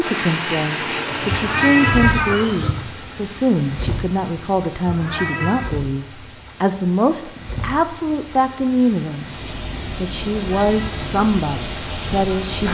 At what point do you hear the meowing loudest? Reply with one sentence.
The loudest moment of the meowing is at 2 seconds.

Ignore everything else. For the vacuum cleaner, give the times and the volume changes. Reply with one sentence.
You can't hear the vacuum cleaner here.